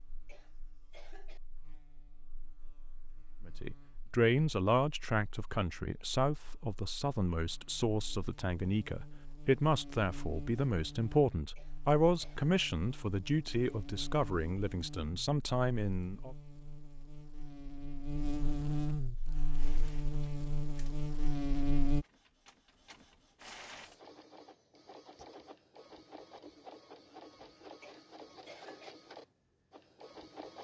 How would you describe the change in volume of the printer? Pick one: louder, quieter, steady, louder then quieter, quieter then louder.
louder.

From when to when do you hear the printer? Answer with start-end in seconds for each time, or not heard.
19.1-30.5.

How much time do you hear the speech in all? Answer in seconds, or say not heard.
13 s.